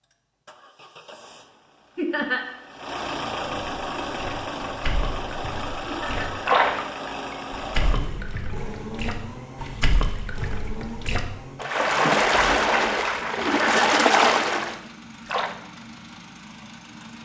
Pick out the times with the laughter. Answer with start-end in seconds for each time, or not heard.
1.9-2.5, 5.8-6.3, 13.4-13.9.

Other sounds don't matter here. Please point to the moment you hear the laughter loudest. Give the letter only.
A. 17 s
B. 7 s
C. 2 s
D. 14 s
C.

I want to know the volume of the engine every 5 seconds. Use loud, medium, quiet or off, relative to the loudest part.
loud, loud, medium, medium.